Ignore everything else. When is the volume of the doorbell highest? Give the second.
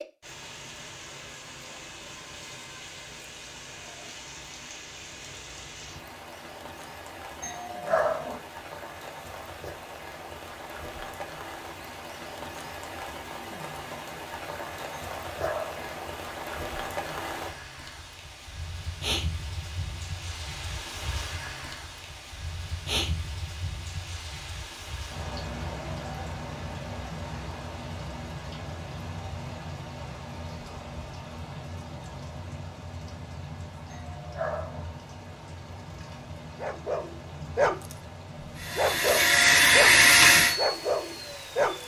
8 s.